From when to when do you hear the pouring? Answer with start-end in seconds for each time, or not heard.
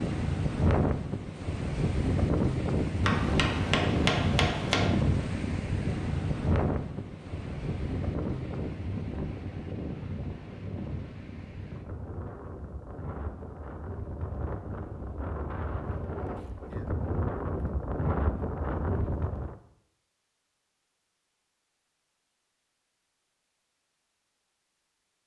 not heard.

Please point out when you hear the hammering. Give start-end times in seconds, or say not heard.
3.0-4.9.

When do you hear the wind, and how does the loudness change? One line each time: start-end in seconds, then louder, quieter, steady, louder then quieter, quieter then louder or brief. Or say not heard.
0.0-19.6 quieter then louder.